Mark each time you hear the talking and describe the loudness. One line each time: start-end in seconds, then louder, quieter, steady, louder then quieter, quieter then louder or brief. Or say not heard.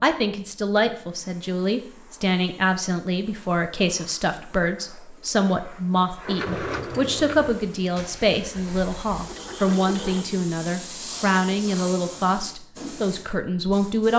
0.0-14.1 steady.